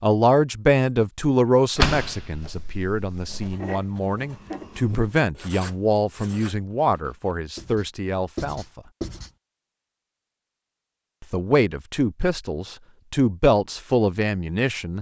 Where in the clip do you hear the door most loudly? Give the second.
2 s.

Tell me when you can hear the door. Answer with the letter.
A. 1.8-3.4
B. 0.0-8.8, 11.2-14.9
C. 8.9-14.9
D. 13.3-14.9
A.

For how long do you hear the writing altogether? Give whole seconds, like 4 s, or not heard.
6 s.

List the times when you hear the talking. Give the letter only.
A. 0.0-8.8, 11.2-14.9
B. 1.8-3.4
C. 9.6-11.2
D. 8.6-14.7
A.